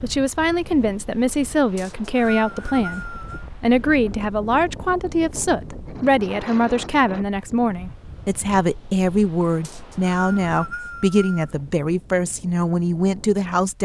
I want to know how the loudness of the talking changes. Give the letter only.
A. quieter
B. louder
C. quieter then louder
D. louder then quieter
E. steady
E.